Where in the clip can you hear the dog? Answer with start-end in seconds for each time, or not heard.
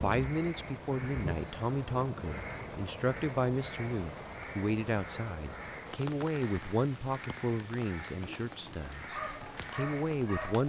8.7-10.6.